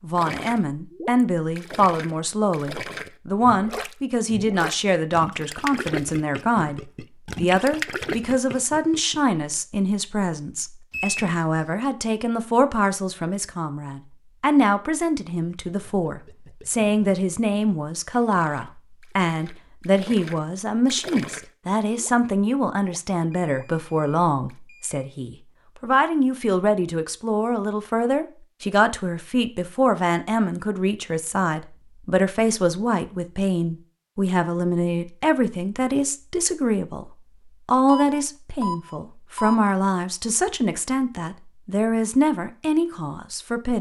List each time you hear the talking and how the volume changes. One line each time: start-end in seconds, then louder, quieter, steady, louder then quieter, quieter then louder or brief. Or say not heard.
0.0-43.7 steady.